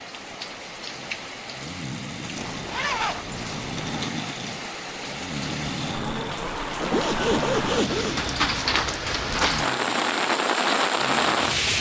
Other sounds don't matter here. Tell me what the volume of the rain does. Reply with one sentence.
The volume of the rain goes up.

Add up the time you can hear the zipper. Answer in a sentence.
You can hear the zipper for 3 seconds altogether.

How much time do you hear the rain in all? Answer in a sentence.
You can hear the rain for 12 seconds altogether.